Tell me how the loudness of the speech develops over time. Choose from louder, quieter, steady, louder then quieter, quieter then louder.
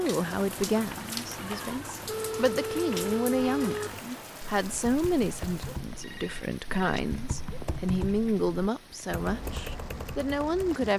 steady.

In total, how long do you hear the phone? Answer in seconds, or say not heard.
3 s.